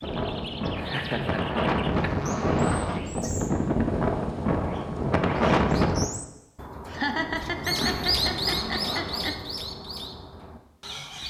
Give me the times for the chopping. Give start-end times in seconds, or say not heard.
not heard.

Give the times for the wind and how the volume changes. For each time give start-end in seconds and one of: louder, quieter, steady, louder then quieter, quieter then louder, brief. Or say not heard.
0.0-6.1 louder.